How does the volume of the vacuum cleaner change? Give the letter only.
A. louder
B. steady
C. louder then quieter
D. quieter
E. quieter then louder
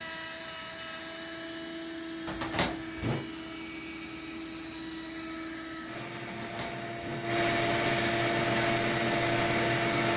A.